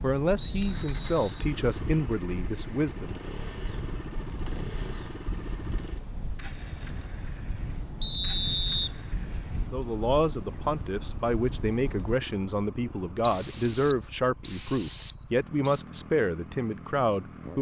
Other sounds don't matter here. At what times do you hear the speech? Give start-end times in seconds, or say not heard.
0.0-3.1, 9.7-17.5.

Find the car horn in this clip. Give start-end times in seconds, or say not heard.
not heard.